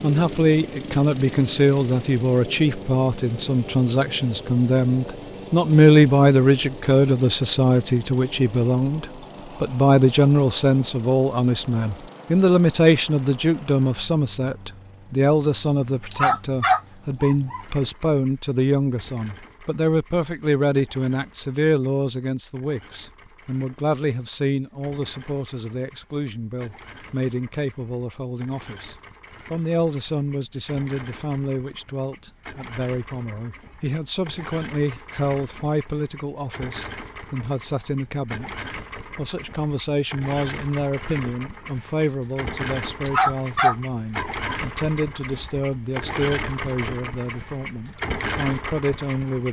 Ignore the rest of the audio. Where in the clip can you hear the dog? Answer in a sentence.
The dog can be heard from 16.1 to 18.1 s and from 43.0 to 45.0 s.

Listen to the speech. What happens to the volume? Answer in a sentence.
The volume of the speech goes down.